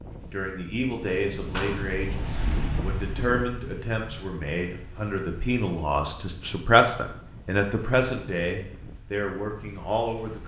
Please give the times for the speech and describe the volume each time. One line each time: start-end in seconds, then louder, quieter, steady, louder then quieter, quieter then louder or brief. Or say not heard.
0.3-10.4 louder then quieter.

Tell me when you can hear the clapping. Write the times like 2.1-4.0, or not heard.
1.5-1.9.